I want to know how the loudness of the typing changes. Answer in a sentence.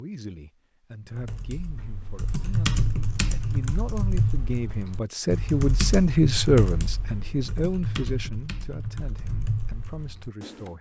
The loudness of the typing goes down.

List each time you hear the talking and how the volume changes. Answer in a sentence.
You can hear the talking from 0.0 to 10.7 s, getting louder then quieter.